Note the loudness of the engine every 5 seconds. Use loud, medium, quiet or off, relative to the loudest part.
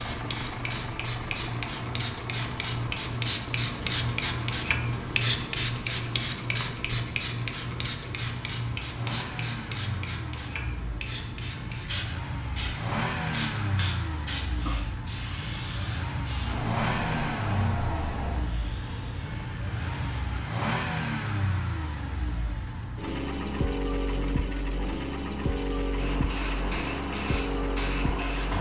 medium, medium, loud, loud, loud, loud.